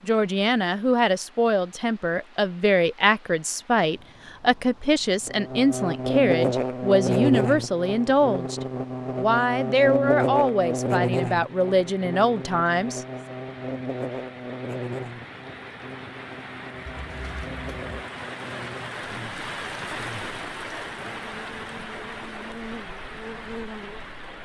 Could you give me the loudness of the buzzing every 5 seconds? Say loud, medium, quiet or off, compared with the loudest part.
off, loud, loud, quiet, quiet.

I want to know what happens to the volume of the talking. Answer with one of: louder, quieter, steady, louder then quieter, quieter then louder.
steady.